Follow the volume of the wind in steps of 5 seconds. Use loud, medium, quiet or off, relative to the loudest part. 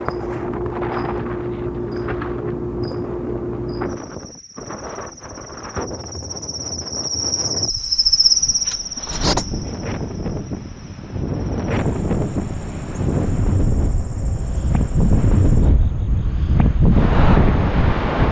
quiet, quiet, medium, loud.